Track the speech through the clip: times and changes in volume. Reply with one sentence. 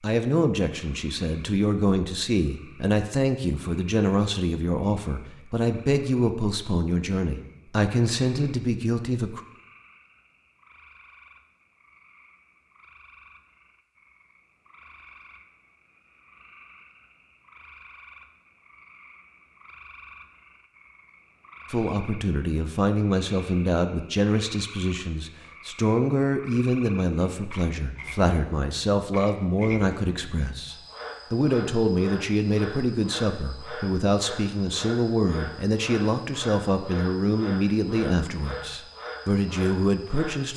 You can hear the speech from 0.0 to 9.4 s, at a steady volume; and from 21.7 to 40.5 s, at a steady volume.